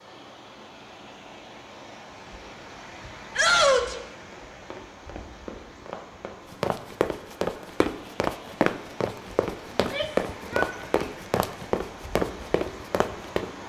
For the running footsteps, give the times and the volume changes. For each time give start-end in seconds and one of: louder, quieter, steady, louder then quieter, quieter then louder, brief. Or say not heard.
4.3-13.5 louder.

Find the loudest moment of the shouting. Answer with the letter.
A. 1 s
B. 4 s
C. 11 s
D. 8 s
B.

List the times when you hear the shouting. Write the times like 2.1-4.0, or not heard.
3.4-4.0, 9.8-11.1.